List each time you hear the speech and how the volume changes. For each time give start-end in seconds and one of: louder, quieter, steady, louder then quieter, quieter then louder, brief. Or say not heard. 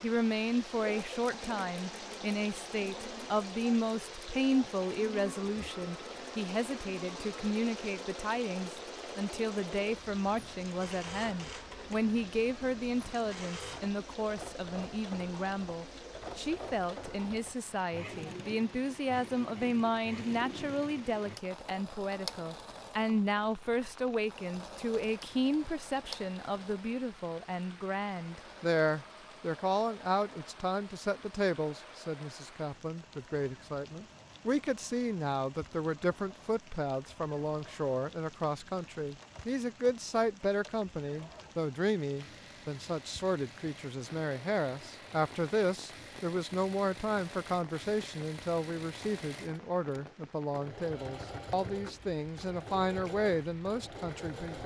0.0-54.6 steady.